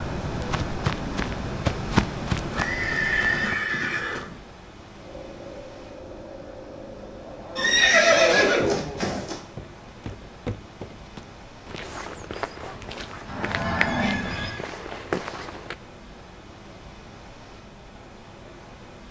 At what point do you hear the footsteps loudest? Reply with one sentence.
The loudest moment of the footsteps is at 2 seconds.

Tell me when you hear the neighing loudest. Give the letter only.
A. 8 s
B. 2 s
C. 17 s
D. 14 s
A.